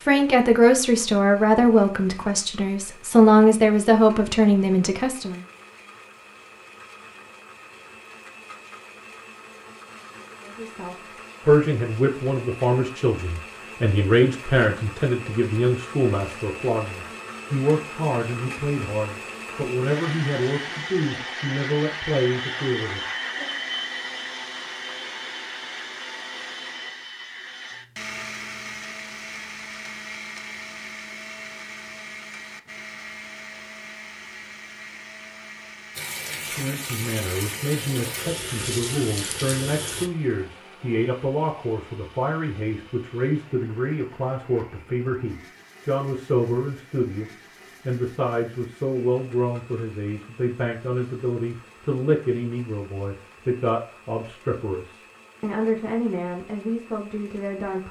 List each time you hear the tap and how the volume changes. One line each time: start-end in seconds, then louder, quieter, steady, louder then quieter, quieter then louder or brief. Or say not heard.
35.9-40.1 steady.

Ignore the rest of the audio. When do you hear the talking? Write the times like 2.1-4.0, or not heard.
0.1-5.4, 10.4-23.6, 36.4-57.8.